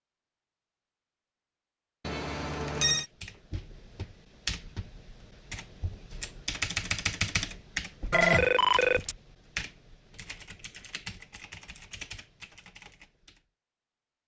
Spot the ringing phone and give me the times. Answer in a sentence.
You can hear the ringing phone from 2.0 to 3.0 s and from 8.1 to 9.2 s.